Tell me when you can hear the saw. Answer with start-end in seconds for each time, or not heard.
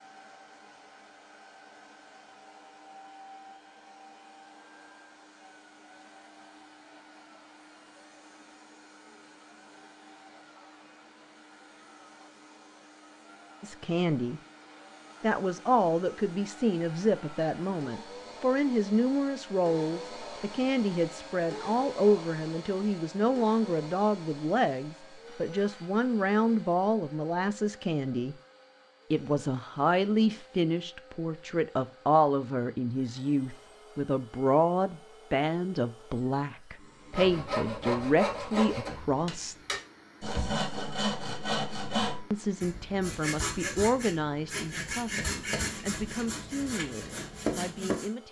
37.1-48.1.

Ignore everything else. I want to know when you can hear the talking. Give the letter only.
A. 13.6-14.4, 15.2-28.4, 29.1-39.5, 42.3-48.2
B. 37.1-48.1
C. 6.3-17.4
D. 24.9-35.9
A.